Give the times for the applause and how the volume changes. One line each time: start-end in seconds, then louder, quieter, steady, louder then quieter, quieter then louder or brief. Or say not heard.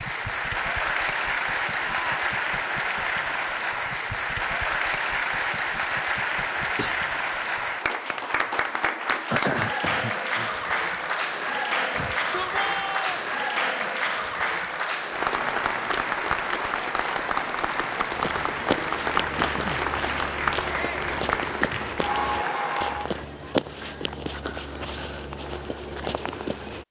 0.0-23.1 steady.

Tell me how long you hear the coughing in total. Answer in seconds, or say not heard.
2 s.